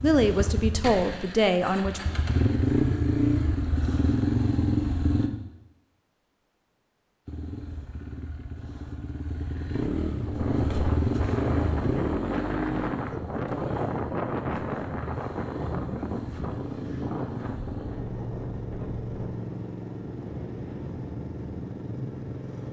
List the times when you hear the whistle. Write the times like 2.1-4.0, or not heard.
not heard.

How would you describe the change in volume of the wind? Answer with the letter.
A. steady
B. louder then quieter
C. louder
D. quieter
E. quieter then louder
D.